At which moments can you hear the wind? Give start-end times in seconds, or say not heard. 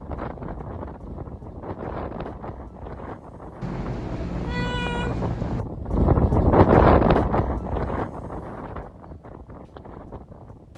0.0-10.7.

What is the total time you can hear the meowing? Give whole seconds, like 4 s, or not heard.
2 s.